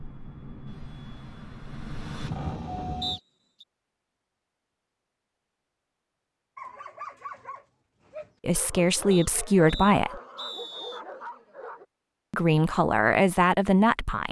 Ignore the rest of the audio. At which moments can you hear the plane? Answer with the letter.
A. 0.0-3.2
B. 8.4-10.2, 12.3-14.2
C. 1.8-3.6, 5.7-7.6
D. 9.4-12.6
A.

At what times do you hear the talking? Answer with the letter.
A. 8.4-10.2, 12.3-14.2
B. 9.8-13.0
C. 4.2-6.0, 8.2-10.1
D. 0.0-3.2
A.